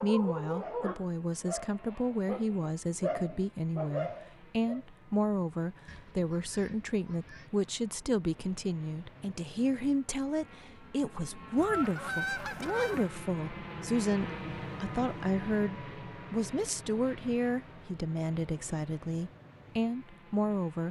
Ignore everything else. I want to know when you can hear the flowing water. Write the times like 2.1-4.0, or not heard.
not heard.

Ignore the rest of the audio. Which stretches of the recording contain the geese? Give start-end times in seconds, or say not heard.
5.8-7.5, 11.6-13.1.